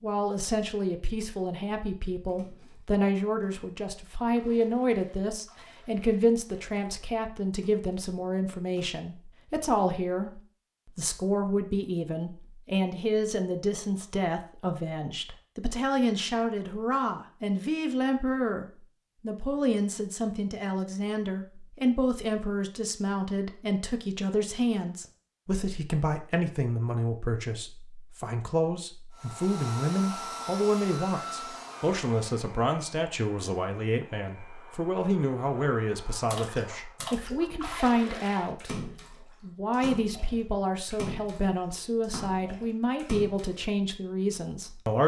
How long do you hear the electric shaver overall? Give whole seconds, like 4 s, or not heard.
not heard.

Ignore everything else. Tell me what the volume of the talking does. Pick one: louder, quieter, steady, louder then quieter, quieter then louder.
steady.